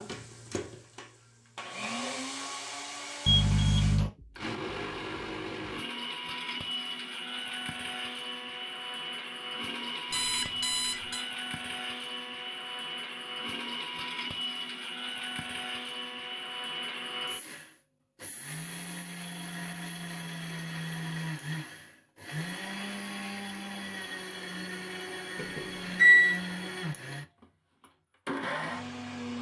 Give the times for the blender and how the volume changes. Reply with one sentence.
You can hear the blender from 0.0 to 29.3 s, at a steady volume.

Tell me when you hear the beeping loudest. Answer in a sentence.
The loudest moment of the beeping is at 26 seconds.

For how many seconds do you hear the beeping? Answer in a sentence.
The beeping can be heard for 3 seconds in total.